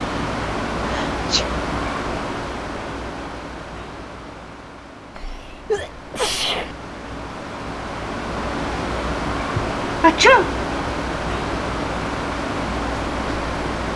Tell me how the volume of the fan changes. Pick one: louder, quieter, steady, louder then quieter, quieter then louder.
quieter then louder.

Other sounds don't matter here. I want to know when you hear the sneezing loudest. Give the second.
10 s.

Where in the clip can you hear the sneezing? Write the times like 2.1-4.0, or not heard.
0.8-1.4, 5.2-6.8, 9.6-10.9.